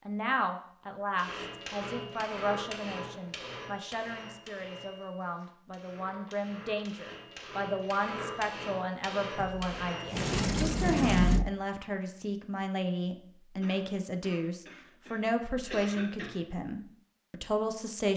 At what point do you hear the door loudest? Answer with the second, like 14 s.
11 s.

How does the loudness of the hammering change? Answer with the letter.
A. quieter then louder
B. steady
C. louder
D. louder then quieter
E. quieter
A.